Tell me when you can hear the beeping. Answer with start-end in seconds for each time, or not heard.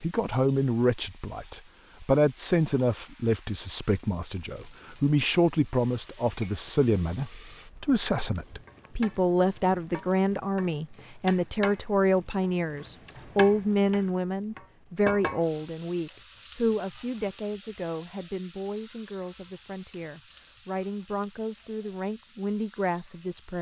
not heard.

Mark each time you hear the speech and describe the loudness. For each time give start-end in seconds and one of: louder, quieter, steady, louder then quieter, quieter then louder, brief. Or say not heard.
0.0-23.5 quieter.